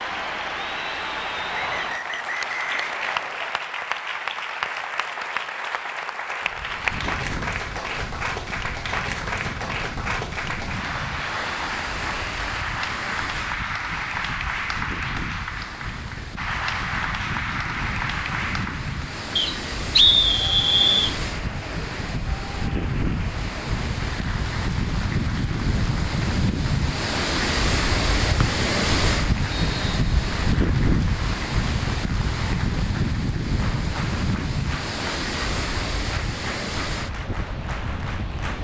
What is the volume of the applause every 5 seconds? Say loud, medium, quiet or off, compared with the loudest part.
loud, loud, loud, loud, medium, medium, medium, medium.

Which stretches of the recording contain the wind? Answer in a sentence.
The wind can be heard from 6.4 to 38.5 s.